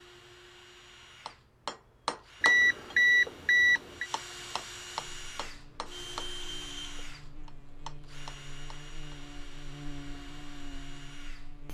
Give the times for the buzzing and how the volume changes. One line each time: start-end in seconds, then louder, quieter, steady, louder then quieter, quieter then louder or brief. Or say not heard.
5.0-11.6 louder.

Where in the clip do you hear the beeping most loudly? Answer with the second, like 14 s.
3 s.